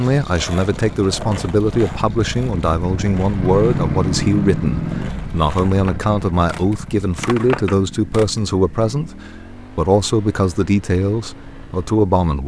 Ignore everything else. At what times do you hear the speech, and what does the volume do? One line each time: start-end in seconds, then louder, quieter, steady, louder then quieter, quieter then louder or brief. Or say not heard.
0.0-12.4 steady.